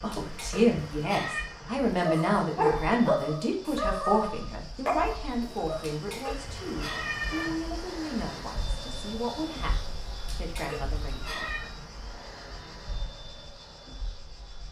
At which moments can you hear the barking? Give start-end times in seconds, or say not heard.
2.0-6.0.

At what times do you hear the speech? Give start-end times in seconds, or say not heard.
0.0-11.3.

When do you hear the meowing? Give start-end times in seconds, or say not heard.
0.1-1.4, 5.8-7.5, 10.2-11.7.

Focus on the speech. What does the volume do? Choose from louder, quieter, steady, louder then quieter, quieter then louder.
quieter.